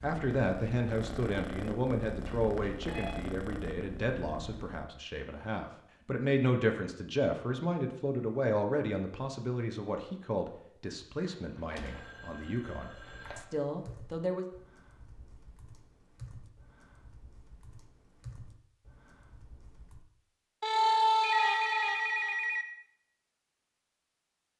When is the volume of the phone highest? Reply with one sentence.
The loudest moment of the phone is at 21 seconds.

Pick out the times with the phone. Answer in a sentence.
The phone can be heard from 2.1 to 3.1 s, from 11.2 to 13.4 s and from 20.6 to 22.6 s.